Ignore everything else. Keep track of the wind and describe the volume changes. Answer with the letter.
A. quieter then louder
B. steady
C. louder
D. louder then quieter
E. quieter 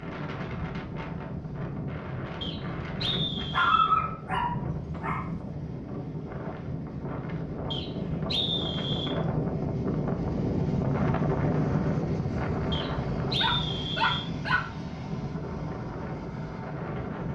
D.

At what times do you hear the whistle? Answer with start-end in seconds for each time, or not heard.
2.4-3.9, 7.7-9.2, 12.7-14.3.